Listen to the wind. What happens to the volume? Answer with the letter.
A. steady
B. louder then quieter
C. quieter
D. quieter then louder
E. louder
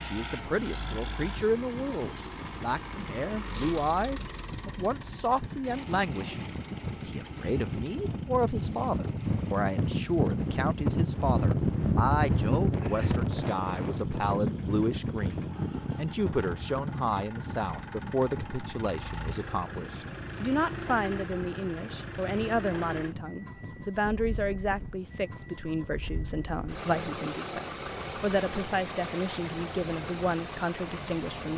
B.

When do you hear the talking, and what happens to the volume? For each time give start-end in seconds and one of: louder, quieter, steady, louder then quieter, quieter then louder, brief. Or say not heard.
0.0-31.5 steady.